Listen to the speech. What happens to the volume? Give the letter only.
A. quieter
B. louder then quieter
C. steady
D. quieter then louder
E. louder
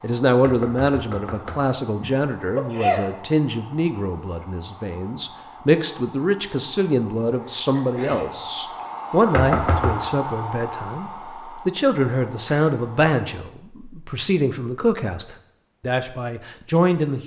C.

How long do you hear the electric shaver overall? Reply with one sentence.
You can't hear the electric shaver here.